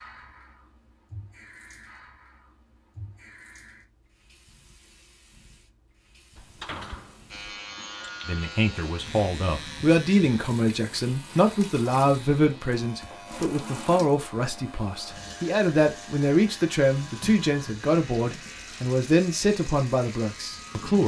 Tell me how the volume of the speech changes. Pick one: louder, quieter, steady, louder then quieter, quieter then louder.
steady.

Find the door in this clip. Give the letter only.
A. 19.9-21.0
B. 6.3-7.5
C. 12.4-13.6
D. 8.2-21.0
B.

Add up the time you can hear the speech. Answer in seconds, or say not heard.
13 s.